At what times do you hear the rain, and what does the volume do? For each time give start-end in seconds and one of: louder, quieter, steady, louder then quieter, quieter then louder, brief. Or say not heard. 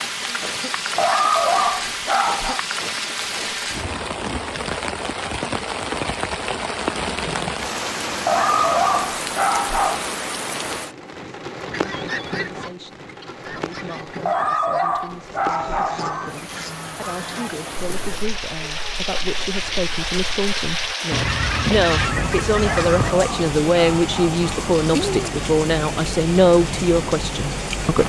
0.0-28.0 quieter then louder.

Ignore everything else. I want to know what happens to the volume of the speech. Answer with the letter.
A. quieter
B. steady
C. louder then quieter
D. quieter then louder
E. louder
E.